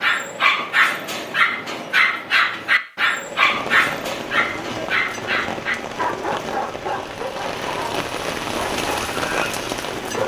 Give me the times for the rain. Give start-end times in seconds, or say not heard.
3.2-10.2.